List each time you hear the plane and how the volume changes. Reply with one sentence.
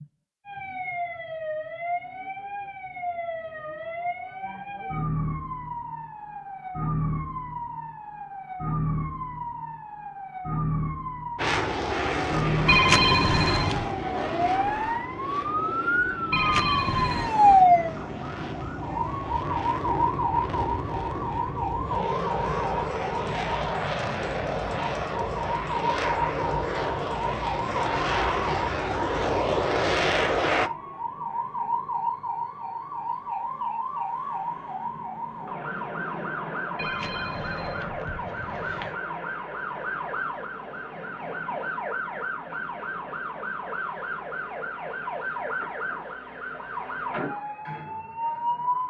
The plane can be heard from 11.3 to 30.7 s, getting quieter then louder.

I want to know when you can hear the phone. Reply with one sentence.
You can hear the phone from 12.7 to 13.9 s, from 16.3 to 17.4 s and from 36.8 to 39.0 s.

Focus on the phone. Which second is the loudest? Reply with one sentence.
The loudest moment of the phone is at 13 seconds.